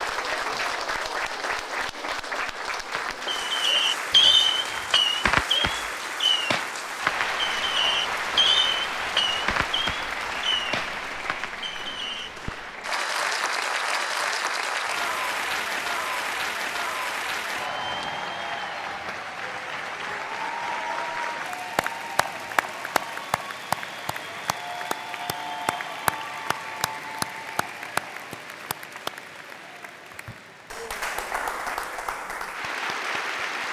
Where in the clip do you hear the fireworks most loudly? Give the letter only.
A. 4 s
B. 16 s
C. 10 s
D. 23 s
A.